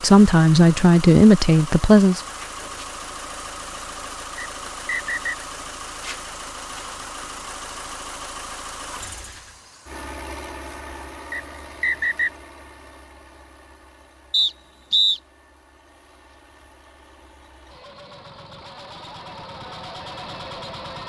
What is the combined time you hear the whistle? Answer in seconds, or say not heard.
3 s.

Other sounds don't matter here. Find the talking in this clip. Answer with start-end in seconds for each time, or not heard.
0.0-2.2.